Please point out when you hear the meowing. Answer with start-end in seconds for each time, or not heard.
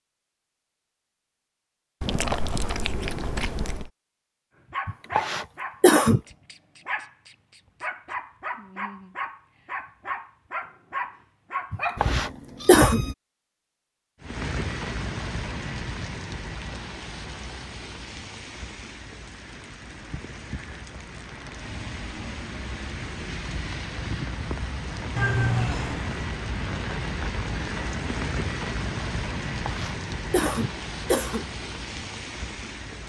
2.0-3.9, 11.9-13.2, 25.1-26.2.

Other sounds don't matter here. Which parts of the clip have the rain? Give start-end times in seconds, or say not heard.
14.2-33.0.